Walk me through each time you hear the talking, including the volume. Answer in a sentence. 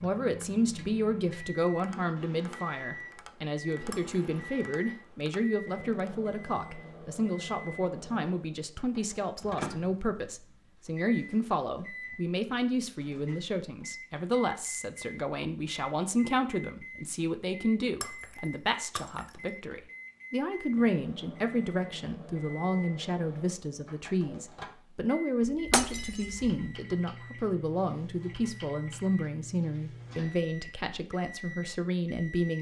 The talking can be heard from 0.0 to 32.5 s, at a steady volume.